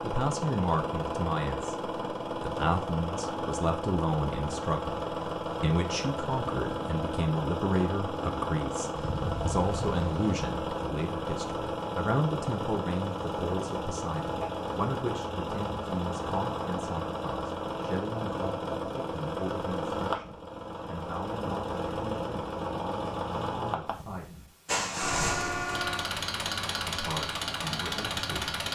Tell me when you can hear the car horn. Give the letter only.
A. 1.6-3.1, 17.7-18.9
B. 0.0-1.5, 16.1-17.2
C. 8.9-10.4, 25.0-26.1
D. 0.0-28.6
C.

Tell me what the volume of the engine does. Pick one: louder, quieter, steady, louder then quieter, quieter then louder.
steady.